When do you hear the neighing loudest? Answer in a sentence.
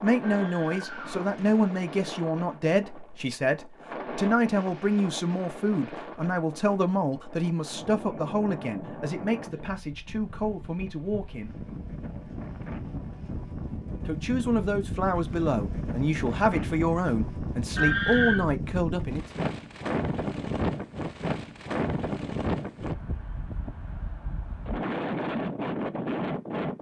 The loudest moment of the neighing is at 18 seconds.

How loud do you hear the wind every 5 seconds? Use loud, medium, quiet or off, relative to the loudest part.
medium, medium, medium, loud, loud, loud.